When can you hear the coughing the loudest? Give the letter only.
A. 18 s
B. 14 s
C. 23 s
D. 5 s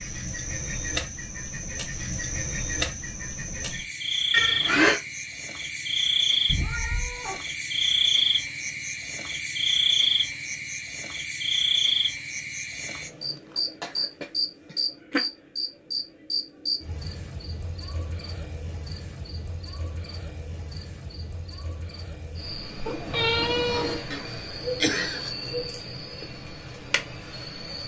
D.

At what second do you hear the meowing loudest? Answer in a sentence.
The volume of the meowing peaks at 23 seconds.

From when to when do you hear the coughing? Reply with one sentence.
The coughing can be heard from 4.3 to 5.0 s, from 13.3 to 14.8 s and from 24.1 to 25.4 s.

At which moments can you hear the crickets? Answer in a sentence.
You can hear the crickets from 0.0 to 27.8 s.